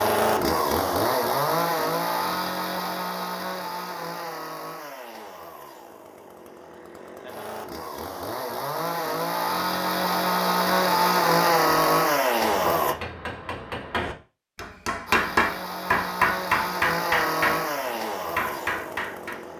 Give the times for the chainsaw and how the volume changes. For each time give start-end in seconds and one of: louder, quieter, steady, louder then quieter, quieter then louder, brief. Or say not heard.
0.0-12.9 quieter then louder
15.1-19.5 louder then quieter.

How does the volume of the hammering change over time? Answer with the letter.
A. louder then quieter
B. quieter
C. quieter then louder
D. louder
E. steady
A.